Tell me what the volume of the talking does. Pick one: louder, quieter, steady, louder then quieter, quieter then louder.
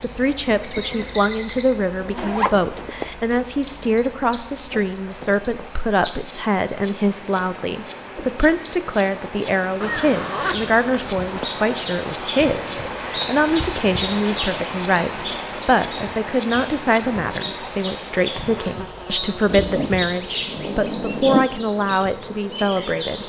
steady.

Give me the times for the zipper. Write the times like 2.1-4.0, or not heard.
2.1-3.1, 9.8-11.4, 19.5-21.5.